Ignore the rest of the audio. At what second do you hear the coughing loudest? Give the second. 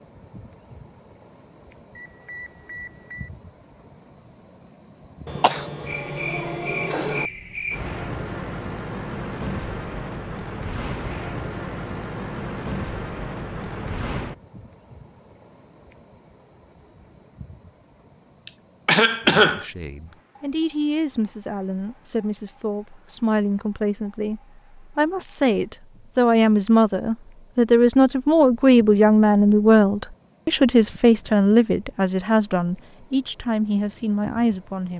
19 s.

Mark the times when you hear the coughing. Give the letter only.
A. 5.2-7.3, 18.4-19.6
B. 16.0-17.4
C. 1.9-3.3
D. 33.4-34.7
A.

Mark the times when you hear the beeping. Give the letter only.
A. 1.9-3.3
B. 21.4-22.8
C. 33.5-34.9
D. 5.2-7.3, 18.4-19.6
A.